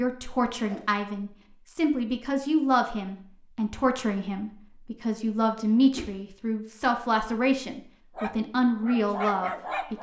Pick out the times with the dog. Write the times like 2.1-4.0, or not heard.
8.2-9.9.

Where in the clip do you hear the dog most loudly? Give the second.
9 s.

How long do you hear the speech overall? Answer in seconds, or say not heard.
10 s.